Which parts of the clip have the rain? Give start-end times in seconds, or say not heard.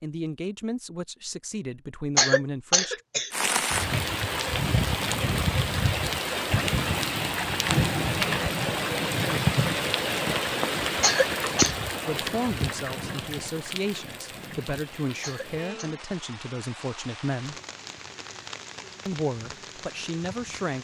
3.3-20.7.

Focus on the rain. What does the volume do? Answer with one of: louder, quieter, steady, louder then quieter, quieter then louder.
quieter.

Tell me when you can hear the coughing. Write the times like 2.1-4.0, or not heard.
2.1-3.3, 11.0-11.8, 15.2-15.9.